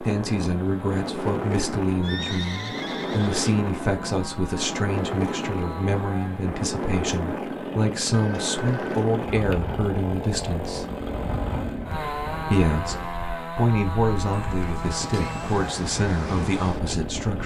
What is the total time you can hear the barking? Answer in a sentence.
You can't hear the barking here.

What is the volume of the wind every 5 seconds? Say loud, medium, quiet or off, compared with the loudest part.
loud, loud, medium, loud.